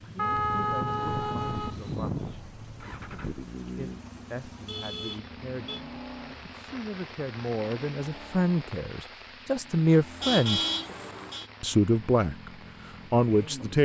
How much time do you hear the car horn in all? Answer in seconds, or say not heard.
5 s.